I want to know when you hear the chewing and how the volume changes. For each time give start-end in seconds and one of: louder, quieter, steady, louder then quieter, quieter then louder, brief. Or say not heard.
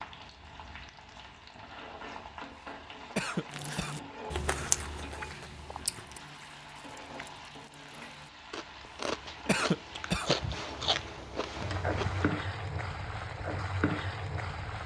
3.5-12.3 quieter then louder.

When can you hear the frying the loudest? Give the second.
12 s.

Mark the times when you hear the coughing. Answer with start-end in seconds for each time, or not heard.
3.1-4.0, 9.4-10.3.